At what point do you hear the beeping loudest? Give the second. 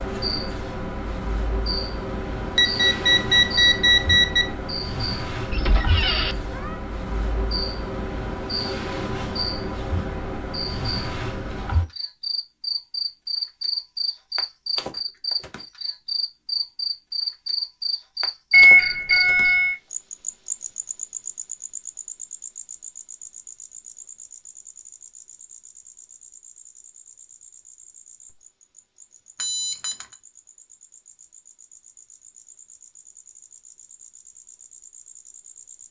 19 s.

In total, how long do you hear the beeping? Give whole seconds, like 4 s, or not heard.
4 s.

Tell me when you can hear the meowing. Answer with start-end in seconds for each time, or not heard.
5.5-6.8.